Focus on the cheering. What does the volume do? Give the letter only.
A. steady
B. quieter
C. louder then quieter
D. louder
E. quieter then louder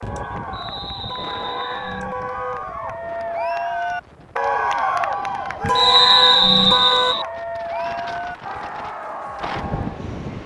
C.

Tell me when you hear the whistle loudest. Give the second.
6 s.